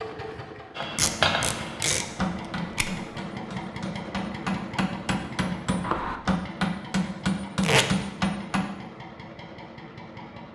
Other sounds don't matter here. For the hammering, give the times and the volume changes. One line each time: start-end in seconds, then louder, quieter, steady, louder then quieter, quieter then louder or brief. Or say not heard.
0.8-8.7 quieter then louder.